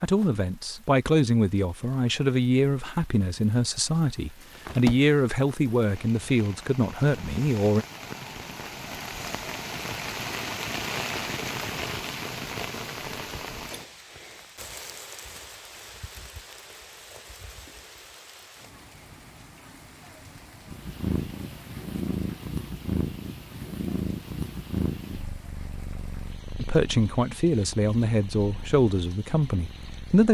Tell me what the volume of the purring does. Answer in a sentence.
The volume of the purring goes down.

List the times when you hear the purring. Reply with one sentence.
The purring can be heard from 20.6 to 30.2 s.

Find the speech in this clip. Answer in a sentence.
The speech can be heard from 0.0 to 7.8 s and from 26.6 to 30.2 s.